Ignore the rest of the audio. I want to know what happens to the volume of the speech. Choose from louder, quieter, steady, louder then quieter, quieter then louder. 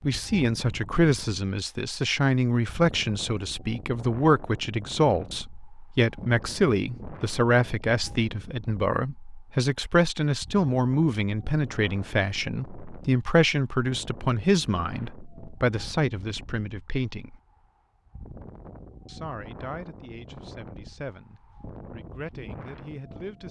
quieter.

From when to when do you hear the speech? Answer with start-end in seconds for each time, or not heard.
0.0-17.4, 19.1-23.4.